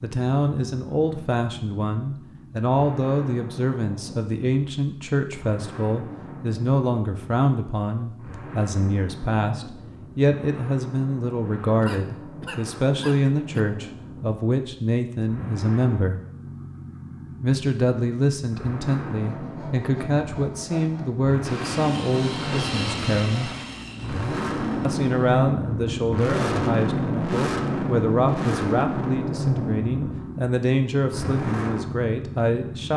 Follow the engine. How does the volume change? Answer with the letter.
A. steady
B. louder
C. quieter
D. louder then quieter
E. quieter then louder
B.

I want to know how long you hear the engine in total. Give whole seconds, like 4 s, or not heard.
33 s.